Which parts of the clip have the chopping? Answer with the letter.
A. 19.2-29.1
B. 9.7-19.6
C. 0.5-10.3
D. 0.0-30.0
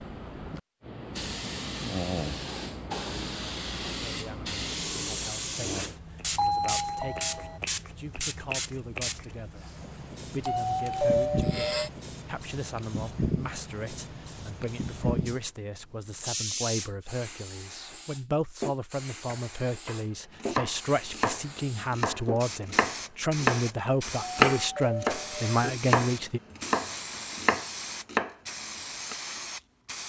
A.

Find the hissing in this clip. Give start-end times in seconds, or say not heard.
0.0-30.0.